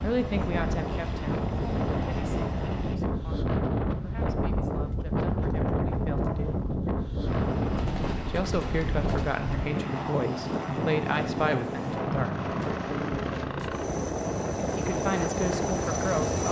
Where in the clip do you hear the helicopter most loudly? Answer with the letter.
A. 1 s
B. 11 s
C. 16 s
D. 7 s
C.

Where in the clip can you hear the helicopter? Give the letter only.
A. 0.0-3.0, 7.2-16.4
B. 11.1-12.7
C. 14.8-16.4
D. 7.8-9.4
A.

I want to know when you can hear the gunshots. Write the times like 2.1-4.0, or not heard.
7.8-9.4.